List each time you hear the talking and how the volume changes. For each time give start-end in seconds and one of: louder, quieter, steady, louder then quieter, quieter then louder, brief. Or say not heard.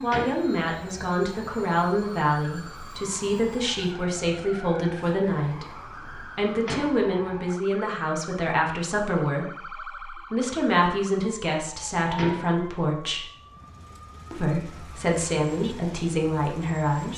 0.0-13.2 steady
14.3-17.1 brief.